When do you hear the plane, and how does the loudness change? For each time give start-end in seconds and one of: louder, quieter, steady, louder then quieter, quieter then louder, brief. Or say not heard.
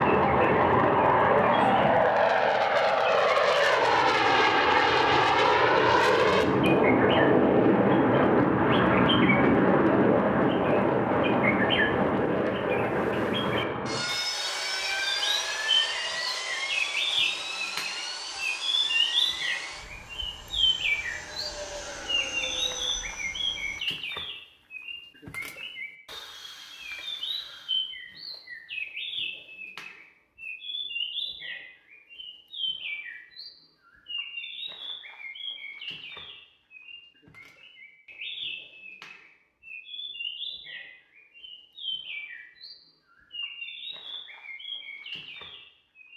0.0-23.9 quieter.